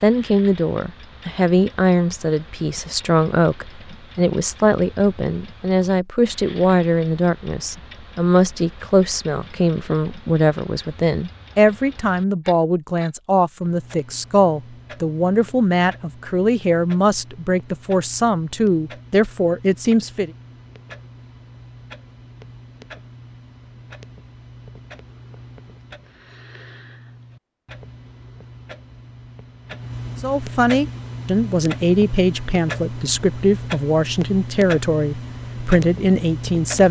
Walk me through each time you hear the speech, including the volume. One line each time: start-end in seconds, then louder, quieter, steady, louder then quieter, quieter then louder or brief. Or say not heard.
0.0-20.3 steady
30.2-36.8 steady.